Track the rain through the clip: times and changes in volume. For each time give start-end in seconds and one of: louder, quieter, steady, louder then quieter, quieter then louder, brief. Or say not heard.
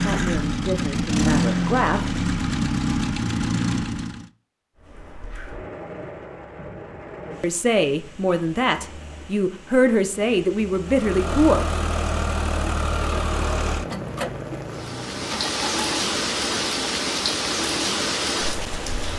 4.8-19.1 quieter then louder.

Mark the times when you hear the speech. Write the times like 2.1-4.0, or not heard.
0.0-2.2, 7.4-11.7.